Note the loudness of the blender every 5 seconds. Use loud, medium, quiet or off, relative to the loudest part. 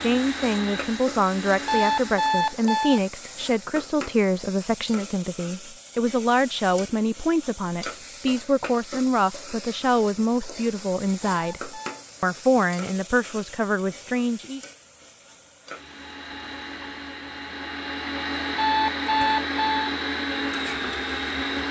medium, off, off, loud, loud.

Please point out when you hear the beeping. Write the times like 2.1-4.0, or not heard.
1.6-3.0, 11.3-12.1, 18.6-19.9.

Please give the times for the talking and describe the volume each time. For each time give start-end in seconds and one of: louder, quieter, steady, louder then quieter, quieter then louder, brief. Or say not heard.
0.0-14.6 steady.